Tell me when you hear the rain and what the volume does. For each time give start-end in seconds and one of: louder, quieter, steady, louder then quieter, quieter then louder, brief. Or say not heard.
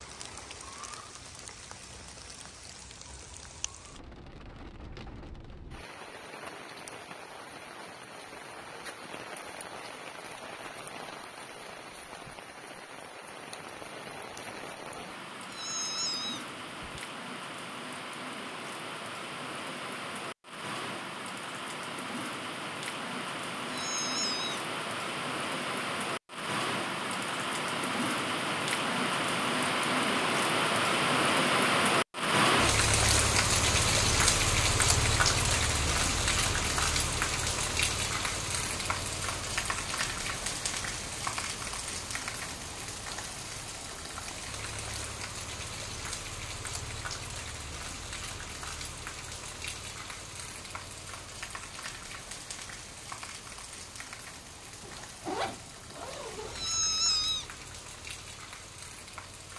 0.0-59.5 louder then quieter.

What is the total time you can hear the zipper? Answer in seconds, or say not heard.
2 s.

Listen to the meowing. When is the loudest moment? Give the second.
57 s.